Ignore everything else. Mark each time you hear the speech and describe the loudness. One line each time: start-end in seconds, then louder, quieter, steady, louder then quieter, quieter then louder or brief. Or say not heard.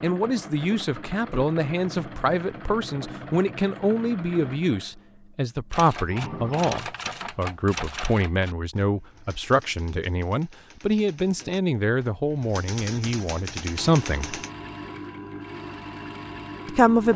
0.0-14.4 steady
16.6-17.1 brief.